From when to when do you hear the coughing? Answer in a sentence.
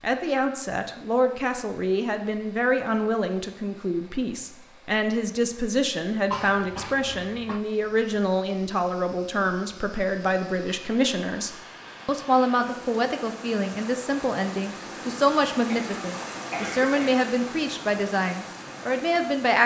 You can hear the coughing from 6.3 to 7.6 s and from 15.7 to 17.1 s.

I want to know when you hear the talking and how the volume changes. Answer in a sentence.
The talking can be heard from 0.0 to 19.6 s, at a steady volume.